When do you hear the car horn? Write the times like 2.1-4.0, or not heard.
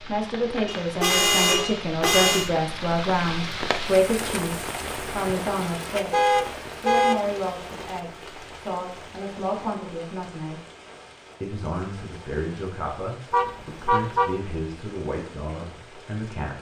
0.7-2.5, 6.1-7.2, 13.3-14.3.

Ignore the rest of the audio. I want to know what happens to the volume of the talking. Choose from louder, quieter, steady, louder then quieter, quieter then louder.
quieter.